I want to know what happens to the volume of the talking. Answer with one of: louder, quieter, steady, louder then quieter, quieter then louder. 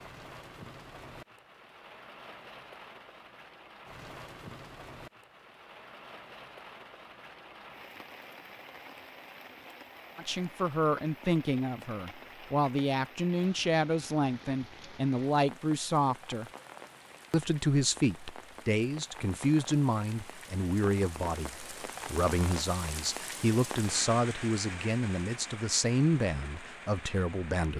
steady.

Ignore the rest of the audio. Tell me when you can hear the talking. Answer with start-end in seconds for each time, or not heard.
10.2-16.5, 17.3-27.7.